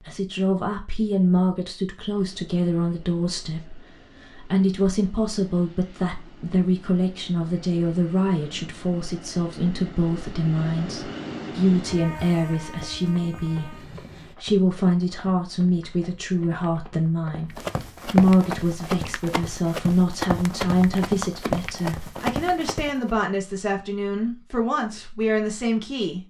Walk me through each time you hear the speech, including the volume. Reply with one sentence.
You can hear the speech from 0.1 to 26.2 s, at a steady volume.